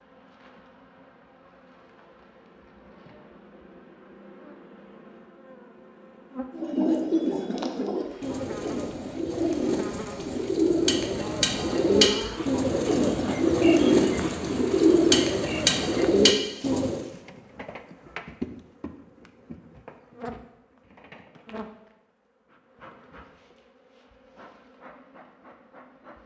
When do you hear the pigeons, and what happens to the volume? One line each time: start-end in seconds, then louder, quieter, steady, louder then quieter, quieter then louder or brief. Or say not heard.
6.5-17.1 louder.